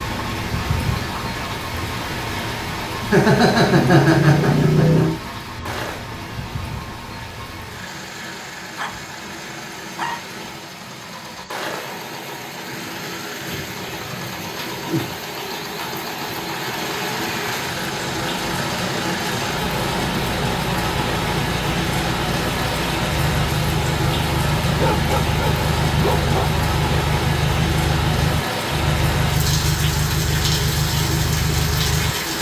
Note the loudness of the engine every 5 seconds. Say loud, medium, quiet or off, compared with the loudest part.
medium, quiet, quiet, medium, loud, loud, loud.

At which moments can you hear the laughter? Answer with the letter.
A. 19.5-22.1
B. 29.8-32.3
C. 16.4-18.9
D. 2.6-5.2
D.